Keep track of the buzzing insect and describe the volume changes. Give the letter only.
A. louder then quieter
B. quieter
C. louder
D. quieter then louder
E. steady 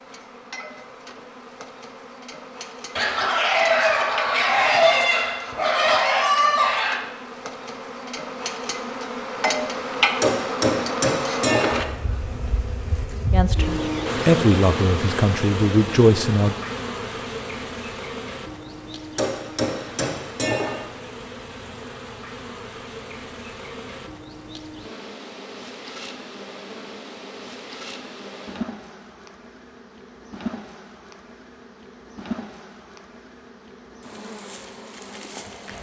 A.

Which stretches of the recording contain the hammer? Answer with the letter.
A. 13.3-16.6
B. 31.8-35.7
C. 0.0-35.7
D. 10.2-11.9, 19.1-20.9
D.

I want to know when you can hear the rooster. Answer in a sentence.
The rooster can be heard from 3.0 to 7.0 s.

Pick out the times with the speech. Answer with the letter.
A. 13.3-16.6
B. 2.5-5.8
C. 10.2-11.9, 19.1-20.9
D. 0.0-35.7
A.